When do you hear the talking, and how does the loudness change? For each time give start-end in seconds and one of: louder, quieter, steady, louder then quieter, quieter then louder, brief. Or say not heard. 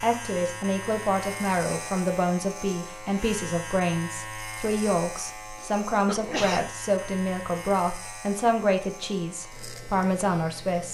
0.0-10.8 steady.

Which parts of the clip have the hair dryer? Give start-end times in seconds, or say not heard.
not heard.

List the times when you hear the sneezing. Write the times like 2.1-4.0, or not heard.
5.5-6.8.